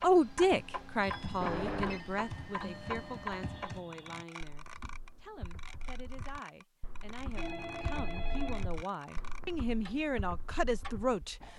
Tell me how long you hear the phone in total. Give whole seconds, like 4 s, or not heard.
2 s.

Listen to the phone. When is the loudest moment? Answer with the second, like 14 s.
2 s.